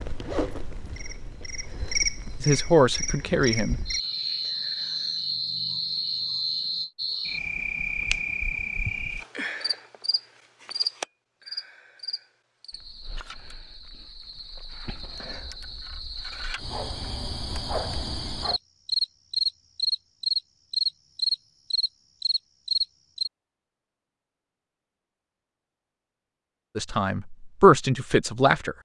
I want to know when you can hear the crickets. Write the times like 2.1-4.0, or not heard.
0.0-23.3.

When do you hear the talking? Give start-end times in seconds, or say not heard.
2.4-4.0, 26.8-28.7.